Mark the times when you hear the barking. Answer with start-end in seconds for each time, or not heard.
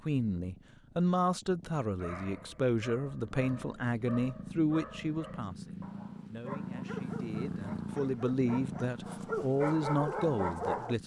1.9-10.9.